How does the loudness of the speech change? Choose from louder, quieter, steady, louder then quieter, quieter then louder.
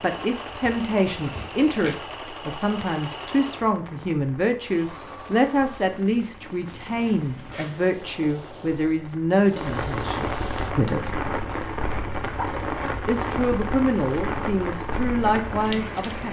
steady.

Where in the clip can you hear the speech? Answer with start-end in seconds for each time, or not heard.
0.0-11.2, 13.1-16.2.